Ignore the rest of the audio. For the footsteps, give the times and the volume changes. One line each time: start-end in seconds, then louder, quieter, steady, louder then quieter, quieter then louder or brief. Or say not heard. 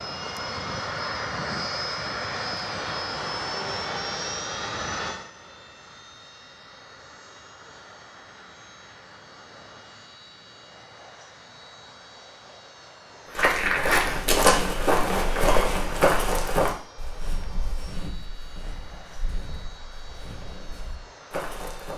13.3-21.9 quieter then louder.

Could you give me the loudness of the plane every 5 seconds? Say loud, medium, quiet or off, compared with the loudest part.
loud, quiet, quiet, quiet, quiet.